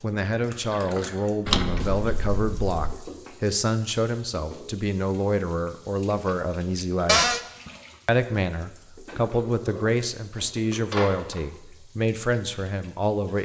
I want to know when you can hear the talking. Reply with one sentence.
The talking can be heard from 0.0 to 7.4 s and from 8.1 to 13.4 s.